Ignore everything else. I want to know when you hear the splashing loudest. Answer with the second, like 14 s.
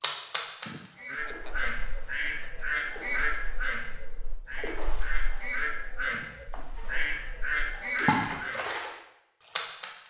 8 s.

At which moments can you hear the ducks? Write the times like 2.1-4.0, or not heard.
0.9-8.6.